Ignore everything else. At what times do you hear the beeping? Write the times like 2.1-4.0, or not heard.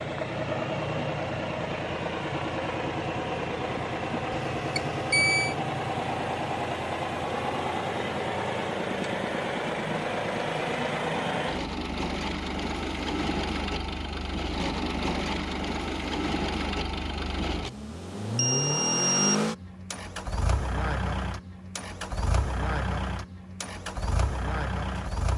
4.5-5.5, 18.4-19.4.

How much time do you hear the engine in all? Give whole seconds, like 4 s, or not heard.
25 s.